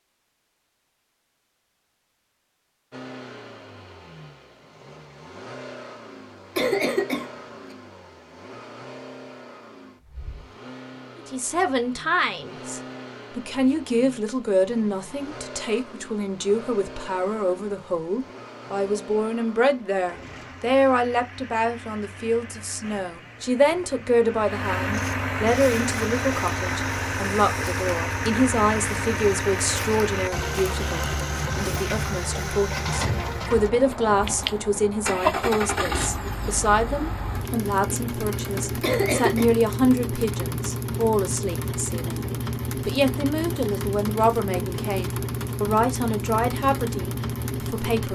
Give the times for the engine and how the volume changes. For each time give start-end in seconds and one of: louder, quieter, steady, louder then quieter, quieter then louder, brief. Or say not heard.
2.9-48.1 louder.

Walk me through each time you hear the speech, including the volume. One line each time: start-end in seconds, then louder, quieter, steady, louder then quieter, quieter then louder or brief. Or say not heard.
11.2-48.1 steady.